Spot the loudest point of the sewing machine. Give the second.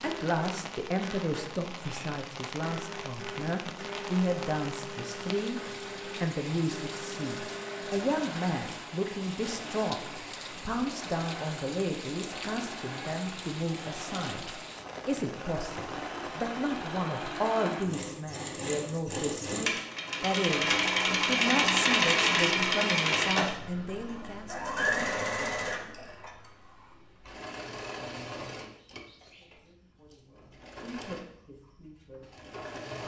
22 s.